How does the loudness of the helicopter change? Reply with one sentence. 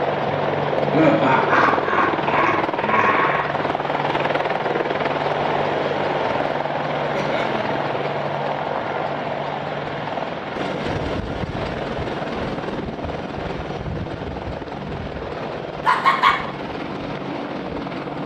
The volume of the helicopter goes down.